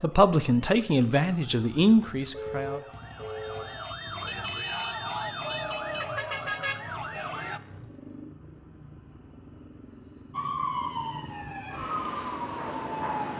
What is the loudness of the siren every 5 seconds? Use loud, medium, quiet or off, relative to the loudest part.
medium, loud, loud.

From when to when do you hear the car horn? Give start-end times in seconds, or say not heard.
2.3-3.6.